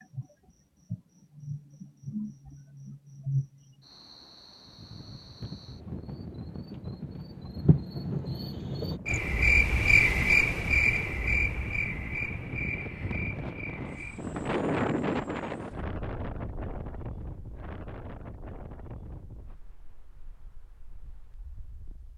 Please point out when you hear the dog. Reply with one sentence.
You can't hear the dog here.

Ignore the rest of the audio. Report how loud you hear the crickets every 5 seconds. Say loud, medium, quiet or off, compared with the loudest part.
medium, loud, loud, off, off.